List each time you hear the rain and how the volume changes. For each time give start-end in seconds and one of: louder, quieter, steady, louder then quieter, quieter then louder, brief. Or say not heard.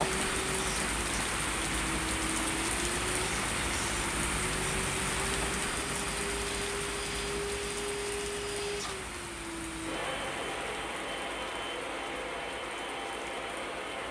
0.0-14.0 quieter.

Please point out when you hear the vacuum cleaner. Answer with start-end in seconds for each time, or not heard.
0.0-14.0.